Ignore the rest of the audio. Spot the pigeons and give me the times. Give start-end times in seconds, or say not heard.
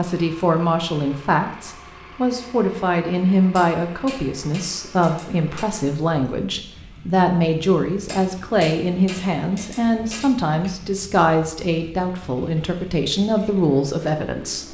not heard.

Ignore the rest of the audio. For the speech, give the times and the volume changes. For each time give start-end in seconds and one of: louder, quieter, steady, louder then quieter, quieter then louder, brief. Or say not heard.
0.0-14.6 steady.